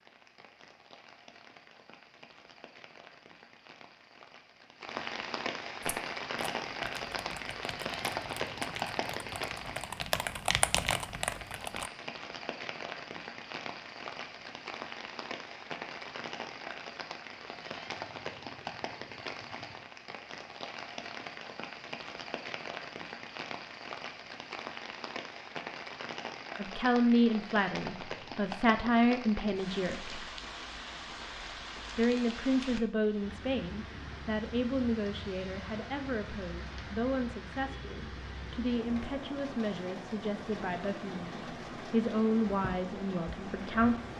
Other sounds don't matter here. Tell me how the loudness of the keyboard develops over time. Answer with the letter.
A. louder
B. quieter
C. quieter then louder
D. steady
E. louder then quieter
A.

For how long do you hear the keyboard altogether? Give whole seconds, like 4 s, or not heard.
6 s.